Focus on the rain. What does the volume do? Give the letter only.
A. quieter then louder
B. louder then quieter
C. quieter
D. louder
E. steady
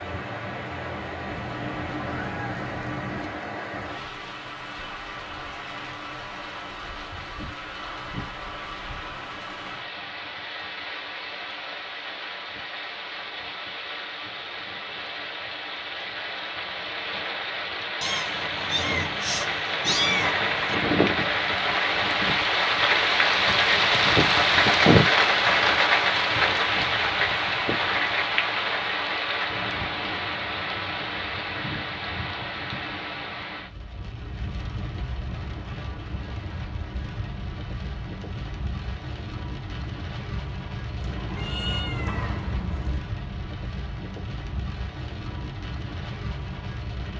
B.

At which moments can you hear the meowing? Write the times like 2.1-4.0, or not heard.
1.2-3.3, 18.0-20.8, 41.0-43.0.